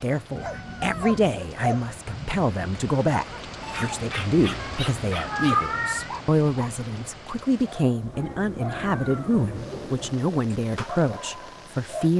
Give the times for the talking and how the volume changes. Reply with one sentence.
You can hear the talking from 0.0 to 12.1 s, at a steady volume.